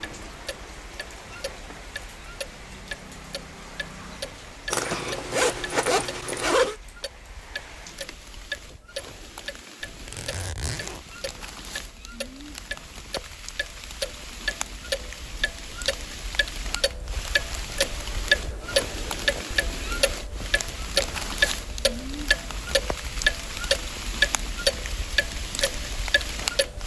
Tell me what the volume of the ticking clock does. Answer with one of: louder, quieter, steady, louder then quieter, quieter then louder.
louder.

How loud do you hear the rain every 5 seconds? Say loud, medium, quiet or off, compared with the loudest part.
medium, medium, medium, loud, loud, loud.